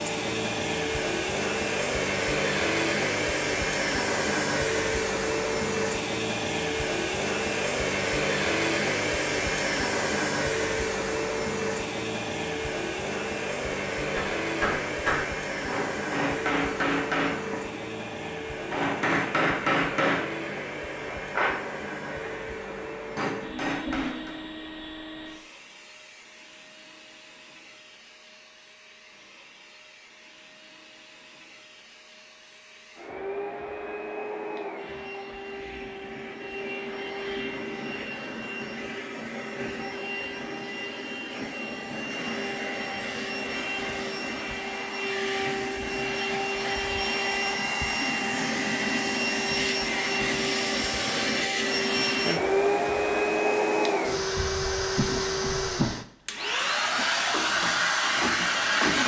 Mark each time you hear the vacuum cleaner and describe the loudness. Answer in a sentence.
The vacuum cleaner can be heard from 0.0 to 59.0 s, getting quieter then louder.